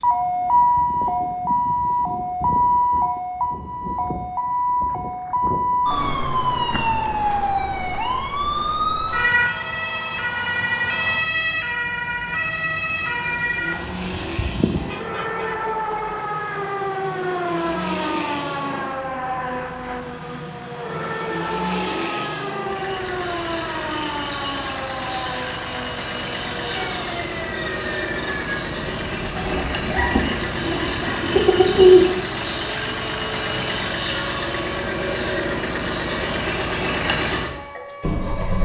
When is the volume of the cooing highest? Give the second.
32 s.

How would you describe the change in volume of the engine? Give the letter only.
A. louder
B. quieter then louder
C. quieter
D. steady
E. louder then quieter
A.